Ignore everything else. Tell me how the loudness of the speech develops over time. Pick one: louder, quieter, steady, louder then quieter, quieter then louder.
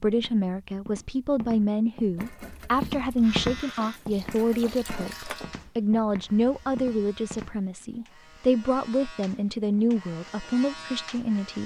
steady.